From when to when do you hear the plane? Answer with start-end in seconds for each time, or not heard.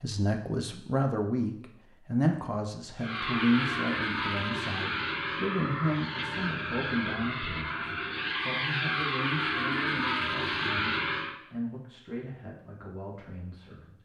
3.0-11.3.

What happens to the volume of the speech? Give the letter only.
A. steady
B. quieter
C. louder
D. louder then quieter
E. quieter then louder
B.